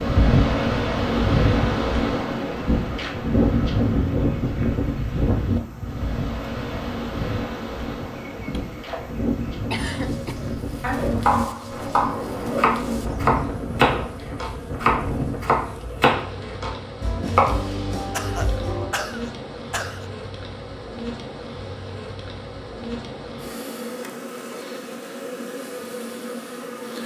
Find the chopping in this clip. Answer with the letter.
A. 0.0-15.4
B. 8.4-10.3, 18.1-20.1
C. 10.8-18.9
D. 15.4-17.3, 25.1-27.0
C.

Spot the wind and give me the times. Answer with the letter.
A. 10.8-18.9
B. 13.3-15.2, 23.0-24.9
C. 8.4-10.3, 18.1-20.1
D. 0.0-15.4
D.